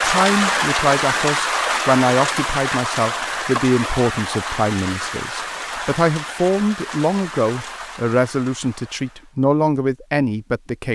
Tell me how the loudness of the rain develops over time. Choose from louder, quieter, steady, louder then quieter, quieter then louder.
quieter.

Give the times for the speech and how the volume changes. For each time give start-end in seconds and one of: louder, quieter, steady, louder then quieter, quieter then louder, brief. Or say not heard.
0.0-10.9 steady.